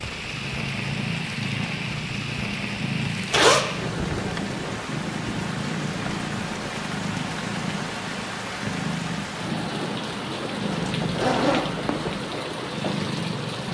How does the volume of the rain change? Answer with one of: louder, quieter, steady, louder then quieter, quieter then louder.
steady.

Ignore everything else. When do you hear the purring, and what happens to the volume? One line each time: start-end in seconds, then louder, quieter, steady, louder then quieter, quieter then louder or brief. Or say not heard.
0.0-13.7 steady.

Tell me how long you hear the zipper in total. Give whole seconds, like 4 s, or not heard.
2 s.